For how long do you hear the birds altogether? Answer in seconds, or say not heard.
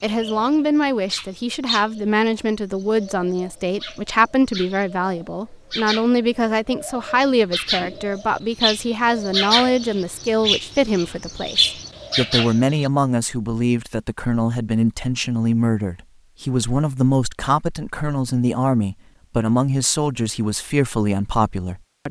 13 s.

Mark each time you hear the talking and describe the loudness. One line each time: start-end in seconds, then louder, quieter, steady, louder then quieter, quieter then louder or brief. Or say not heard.
0.0-22.0 steady.